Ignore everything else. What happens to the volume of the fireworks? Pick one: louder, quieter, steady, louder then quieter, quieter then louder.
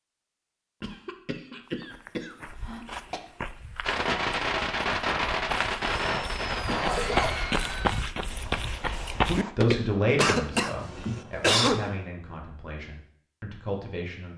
quieter.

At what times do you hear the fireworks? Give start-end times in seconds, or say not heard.
3.9-9.6.